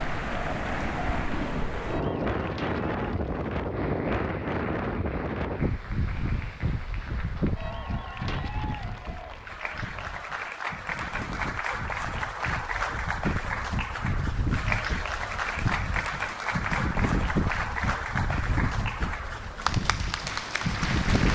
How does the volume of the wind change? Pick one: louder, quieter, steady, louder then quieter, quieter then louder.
quieter then louder.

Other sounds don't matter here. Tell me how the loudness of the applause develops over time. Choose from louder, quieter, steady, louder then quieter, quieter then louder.
louder.